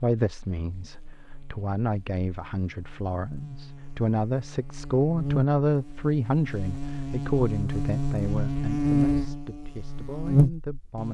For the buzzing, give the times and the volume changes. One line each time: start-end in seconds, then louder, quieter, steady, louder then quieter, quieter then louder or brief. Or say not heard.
0.1-11.0 louder.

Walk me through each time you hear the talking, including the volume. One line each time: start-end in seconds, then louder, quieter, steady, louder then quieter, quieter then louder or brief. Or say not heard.
0.0-11.0 louder then quieter.